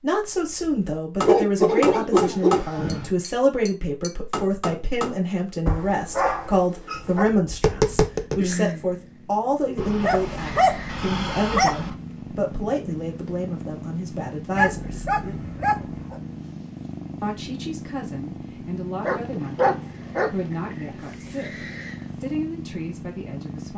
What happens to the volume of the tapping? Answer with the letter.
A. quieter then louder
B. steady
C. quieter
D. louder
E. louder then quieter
A.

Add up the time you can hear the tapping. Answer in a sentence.
The tapping can be heard for 8 seconds in total.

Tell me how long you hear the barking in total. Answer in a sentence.
The barking can be heard for 9 seconds in total.